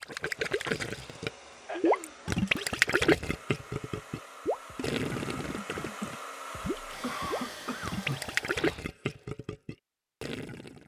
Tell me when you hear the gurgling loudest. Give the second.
3 s.